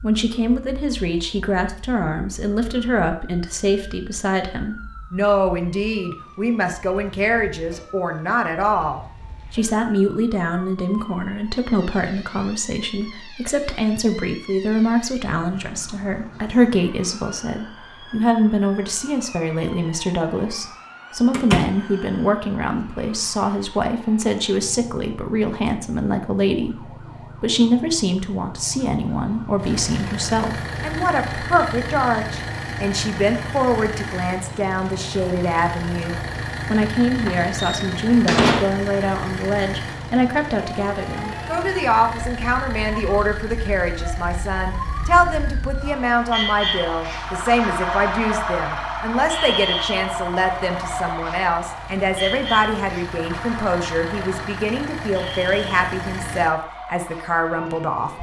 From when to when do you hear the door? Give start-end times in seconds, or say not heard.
21.3-21.8, 37.2-38.7.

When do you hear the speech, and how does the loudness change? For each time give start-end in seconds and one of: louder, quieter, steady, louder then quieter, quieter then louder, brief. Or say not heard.
0.0-58.1 steady.